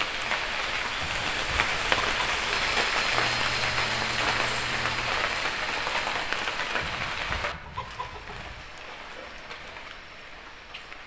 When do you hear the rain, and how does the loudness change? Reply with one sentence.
You can hear the rain from 0.0 to 11.0 s, getting quieter.